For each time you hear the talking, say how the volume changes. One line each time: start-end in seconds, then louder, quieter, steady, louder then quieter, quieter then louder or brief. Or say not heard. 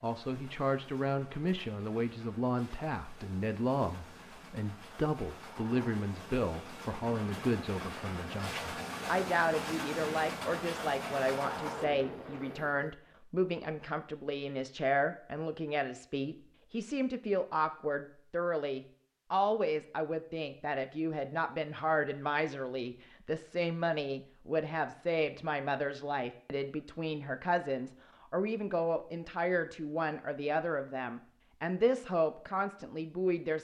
0.0-33.5 steady.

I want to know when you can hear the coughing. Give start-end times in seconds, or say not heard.
not heard.